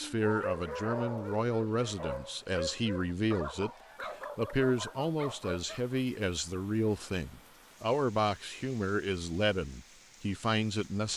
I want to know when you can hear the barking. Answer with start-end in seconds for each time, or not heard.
0.0-6.0.